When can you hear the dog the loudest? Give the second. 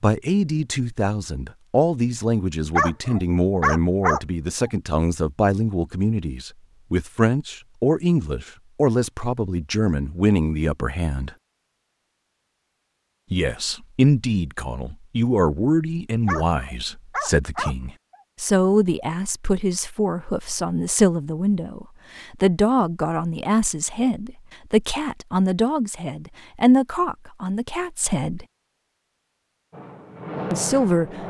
4 s.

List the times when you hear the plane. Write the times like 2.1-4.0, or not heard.
29.7-31.2.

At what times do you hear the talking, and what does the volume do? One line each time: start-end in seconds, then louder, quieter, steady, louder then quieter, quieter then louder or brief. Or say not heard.
0.0-11.3 steady
13.3-28.4 steady
30.5-31.2 brief.